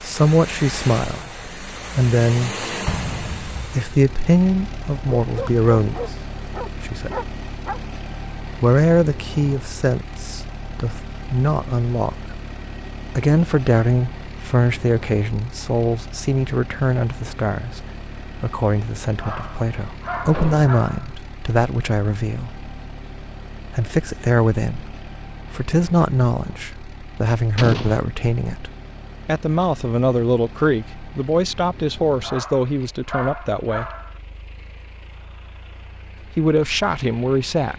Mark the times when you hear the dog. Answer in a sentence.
The dog can be heard from 5.2 to 7.8 s, from 19.1 to 21.1 s and from 32.2 to 34.1 s.